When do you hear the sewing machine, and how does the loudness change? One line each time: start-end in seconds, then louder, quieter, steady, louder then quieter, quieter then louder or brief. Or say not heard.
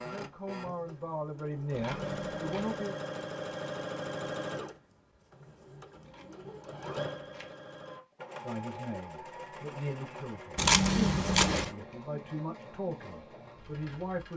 0.0-14.3 quieter.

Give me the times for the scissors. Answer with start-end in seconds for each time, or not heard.
1.7-2.8, 6.0-7.5, 10.6-11.7.